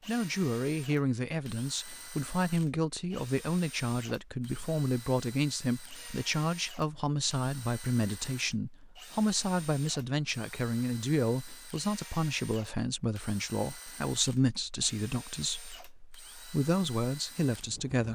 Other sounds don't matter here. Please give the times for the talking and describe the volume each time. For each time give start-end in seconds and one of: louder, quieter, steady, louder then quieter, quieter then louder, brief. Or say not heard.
0.1-18.0 steady.